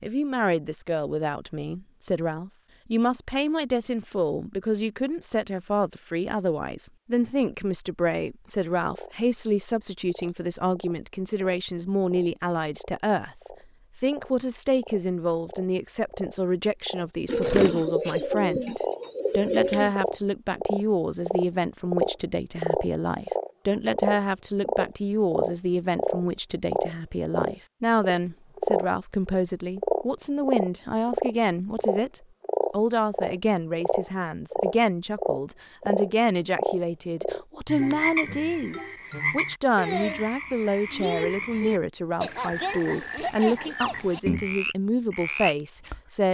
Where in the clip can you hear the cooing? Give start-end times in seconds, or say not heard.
17.2-19.9.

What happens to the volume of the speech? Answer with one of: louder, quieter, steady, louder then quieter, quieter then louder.
steady.